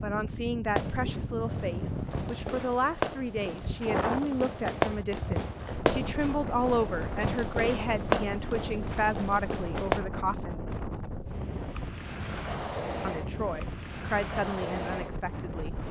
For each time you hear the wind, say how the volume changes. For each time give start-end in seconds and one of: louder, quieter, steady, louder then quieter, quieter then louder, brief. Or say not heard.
0.0-15.8 steady.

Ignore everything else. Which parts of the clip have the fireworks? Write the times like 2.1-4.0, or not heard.
0.7-10.0.